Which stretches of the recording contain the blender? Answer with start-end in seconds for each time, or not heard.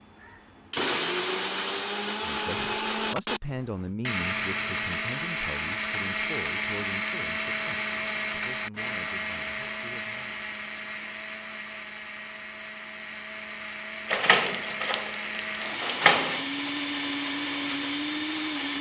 0.0-18.7.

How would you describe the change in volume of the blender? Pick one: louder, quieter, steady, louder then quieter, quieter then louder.
quieter then louder.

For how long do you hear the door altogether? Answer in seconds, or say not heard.
3 s.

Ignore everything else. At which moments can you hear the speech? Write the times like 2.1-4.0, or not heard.
2.2-10.4.